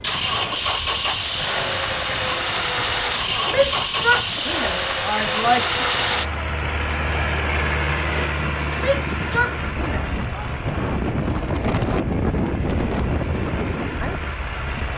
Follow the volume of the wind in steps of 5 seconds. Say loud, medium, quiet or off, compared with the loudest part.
quiet, medium, loud.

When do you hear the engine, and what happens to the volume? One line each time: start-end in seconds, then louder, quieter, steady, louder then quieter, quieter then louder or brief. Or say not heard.
0.0-14.9 quieter.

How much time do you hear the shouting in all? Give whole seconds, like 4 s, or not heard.
4 s.